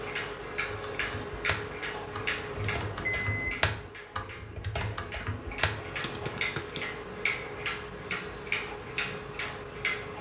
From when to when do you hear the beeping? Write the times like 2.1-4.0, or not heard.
2.5-3.5.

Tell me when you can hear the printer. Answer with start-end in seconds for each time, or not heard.
not heard.